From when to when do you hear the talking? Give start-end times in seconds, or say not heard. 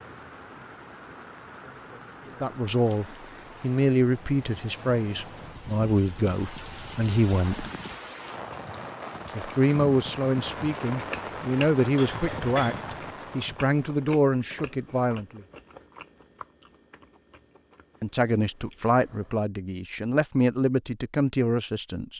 2.4-7.7, 9.3-15.4, 18.0-22.1.